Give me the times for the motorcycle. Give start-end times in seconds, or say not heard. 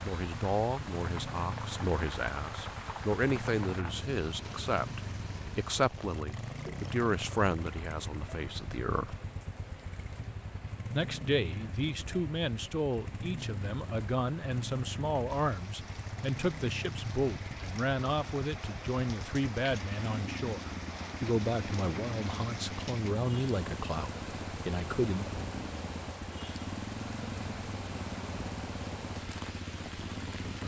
0.0-30.6.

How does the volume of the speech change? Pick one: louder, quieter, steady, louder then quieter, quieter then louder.
steady.